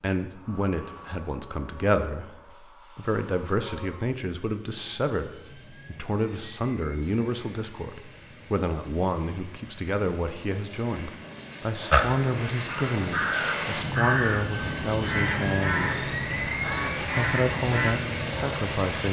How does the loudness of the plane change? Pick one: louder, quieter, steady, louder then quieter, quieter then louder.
louder.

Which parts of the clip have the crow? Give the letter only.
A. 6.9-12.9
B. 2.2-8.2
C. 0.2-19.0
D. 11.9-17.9
D.